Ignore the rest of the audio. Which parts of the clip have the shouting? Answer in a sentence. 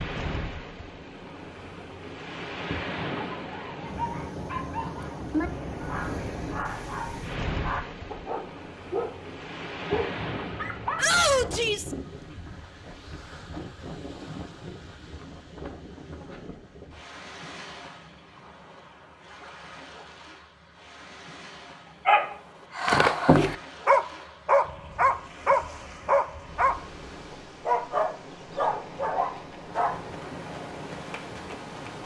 You can hear the shouting from 10.9 to 11.9 s.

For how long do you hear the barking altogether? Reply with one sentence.
You can hear the barking for 15 seconds altogether.